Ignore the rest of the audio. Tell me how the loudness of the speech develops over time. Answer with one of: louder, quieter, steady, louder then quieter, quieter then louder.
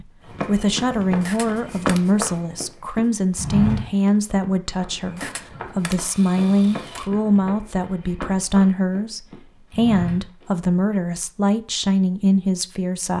steady.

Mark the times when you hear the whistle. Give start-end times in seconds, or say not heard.
not heard.